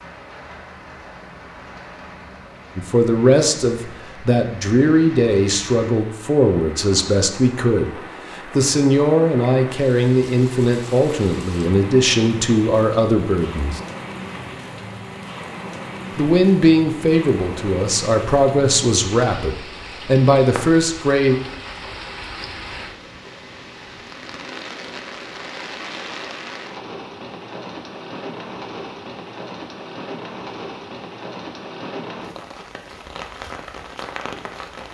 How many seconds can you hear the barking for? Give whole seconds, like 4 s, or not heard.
not heard.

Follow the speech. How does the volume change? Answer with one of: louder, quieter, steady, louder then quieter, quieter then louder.
steady.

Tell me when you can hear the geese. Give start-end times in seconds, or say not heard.
not heard.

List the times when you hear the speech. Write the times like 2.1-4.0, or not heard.
2.8-13.8, 16.1-21.4.